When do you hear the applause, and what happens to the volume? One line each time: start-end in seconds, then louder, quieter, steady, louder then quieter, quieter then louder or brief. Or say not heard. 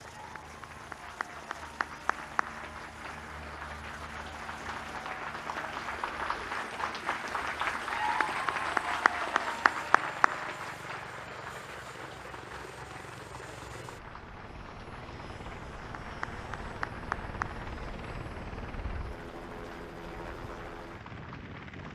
0.0-21.9 louder then quieter.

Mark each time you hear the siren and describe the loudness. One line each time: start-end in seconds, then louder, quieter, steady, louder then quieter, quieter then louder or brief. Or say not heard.
not heard.